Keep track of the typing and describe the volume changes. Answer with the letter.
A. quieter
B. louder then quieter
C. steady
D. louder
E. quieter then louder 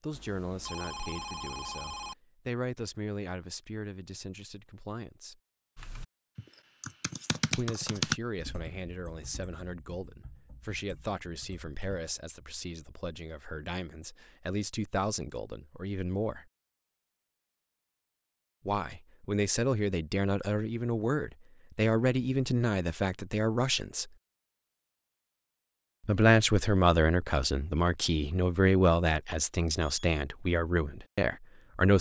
B.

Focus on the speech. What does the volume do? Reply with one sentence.
The volume of the speech goes up.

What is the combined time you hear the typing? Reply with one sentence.
You can hear the typing for 6 seconds altogether.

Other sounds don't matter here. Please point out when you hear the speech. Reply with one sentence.
You can hear the speech from 0.0 to 5.3 s, from 7.5 to 16.4 s, from 18.6 to 24.1 s and from 26.1 to 31.9 s.